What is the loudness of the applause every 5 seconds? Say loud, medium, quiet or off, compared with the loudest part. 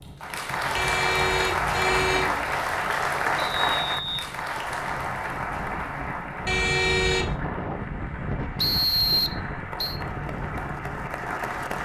loud, medium, medium.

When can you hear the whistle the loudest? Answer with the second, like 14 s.
9 s.